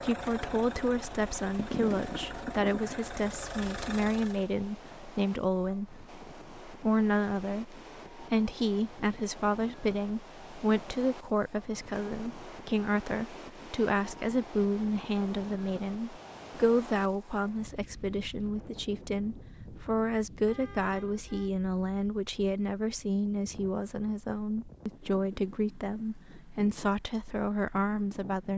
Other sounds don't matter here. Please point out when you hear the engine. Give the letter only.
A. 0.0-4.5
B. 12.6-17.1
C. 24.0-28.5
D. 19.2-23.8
A.